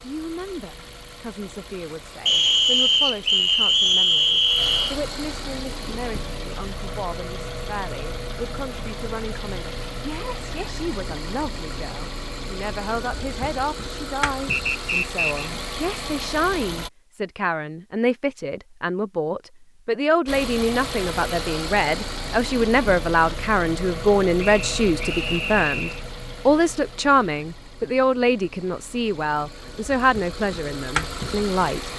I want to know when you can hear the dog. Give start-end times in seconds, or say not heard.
not heard.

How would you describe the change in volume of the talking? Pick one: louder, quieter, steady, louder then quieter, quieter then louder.
louder.